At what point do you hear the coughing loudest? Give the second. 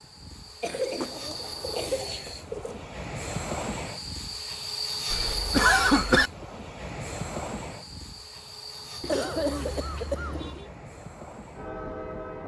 6 s.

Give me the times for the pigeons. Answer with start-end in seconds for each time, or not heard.
0.7-2.9, 9.0-10.7.